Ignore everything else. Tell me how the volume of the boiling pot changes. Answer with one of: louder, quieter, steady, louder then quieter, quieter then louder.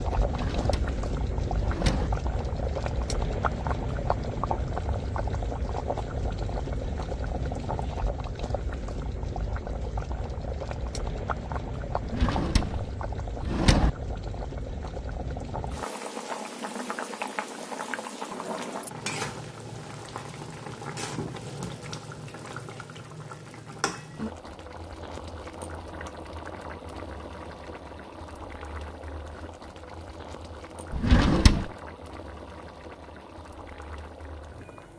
quieter.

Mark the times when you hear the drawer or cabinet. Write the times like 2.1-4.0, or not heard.
0.2-2.1, 12.0-13.9, 30.9-31.7.